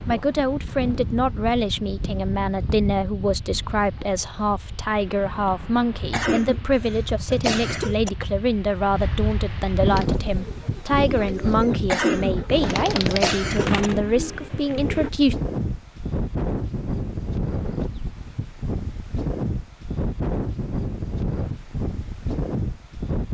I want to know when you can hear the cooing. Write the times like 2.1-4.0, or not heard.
9.8-15.1.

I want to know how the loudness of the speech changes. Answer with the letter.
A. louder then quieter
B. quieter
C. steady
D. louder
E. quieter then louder
C.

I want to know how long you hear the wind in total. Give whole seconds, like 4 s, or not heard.
23 s.